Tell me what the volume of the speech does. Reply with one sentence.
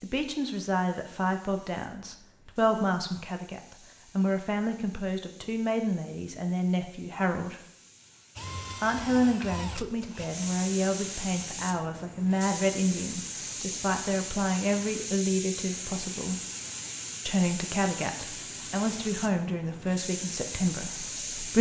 The loudness of the speech stays about the same.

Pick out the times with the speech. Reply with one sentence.
You can hear the speech from 0.0 to 7.6 s, from 8.8 to 16.4 s and from 17.2 to 21.5 s.